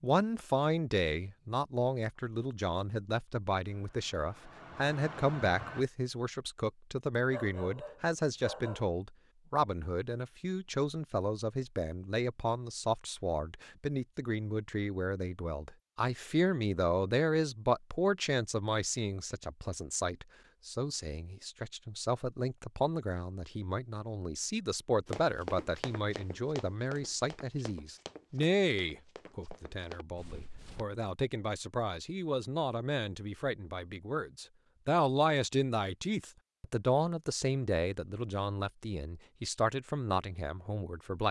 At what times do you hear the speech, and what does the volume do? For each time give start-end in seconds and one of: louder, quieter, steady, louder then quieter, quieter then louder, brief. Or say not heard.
0.0-41.2 steady.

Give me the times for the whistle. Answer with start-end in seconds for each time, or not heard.
not heard.